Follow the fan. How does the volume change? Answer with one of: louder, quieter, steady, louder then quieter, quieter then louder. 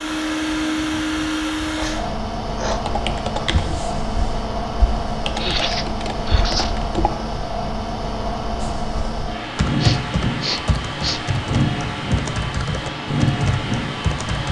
steady.